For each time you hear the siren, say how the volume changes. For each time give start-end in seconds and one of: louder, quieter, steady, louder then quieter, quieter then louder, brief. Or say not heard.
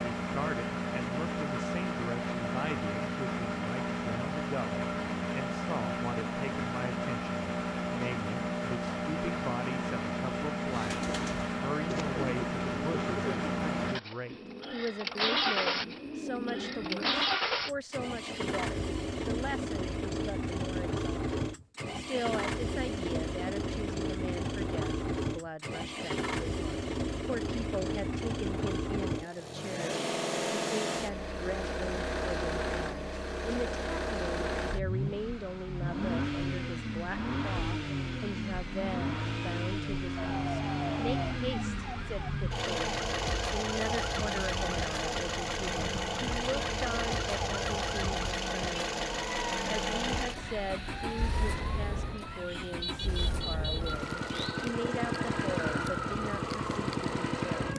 40.1-57.7 steady.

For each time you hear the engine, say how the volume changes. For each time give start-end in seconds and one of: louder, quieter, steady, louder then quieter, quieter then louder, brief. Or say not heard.
0.0-57.7 steady.